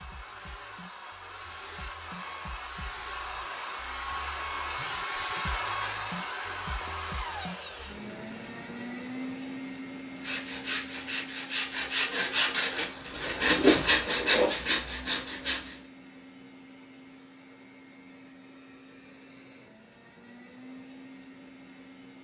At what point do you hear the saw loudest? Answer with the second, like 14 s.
14 s.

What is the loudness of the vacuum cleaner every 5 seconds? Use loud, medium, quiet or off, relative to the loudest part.
loud, loud, medium, quiet, quiet.